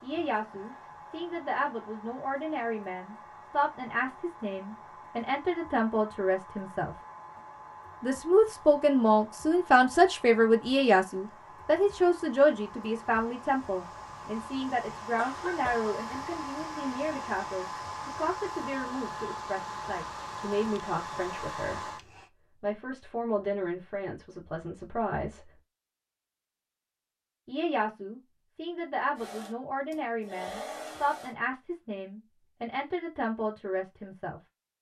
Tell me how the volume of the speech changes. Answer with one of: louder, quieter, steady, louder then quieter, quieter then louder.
louder then quieter.